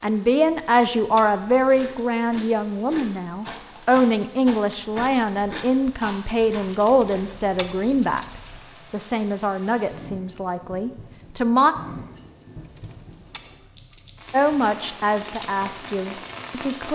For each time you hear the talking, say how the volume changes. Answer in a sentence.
You can hear the talking from 0.0 to 11.8 s, getting quieter; and briefly from 14.3 to 16.9 s.